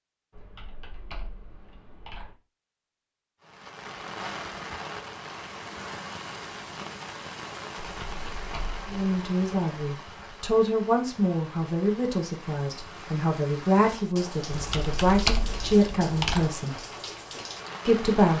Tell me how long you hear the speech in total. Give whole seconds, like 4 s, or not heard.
8 s.